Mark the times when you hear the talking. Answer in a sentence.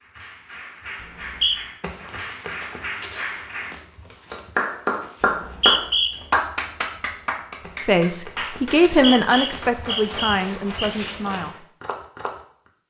You can hear the talking from 7.8 to 11.7 s.